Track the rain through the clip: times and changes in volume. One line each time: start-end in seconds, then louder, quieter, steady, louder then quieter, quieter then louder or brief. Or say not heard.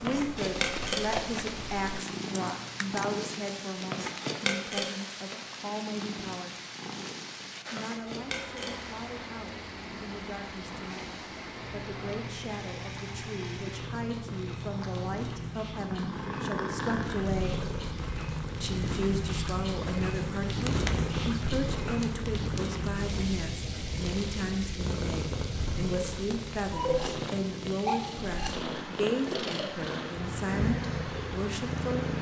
0.2-32.1 louder then quieter.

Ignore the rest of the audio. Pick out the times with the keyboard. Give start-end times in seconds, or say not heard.
0.0-3.1.